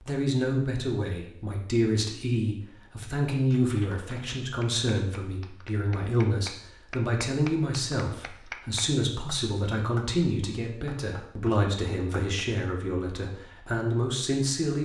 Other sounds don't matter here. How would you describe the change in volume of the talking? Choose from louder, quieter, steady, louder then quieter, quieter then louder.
steady.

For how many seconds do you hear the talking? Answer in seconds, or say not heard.
15 s.